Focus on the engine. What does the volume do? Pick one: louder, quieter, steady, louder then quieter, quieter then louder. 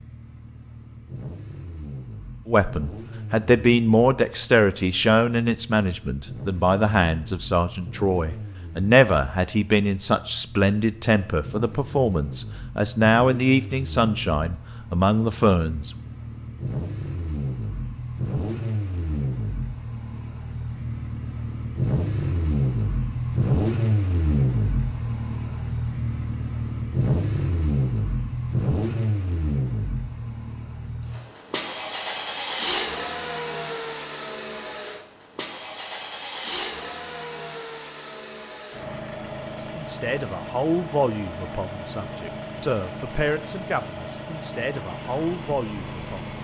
louder then quieter.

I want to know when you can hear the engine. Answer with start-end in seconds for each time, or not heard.
0.0-46.3.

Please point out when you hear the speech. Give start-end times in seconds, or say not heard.
2.5-15.9, 39.5-46.3.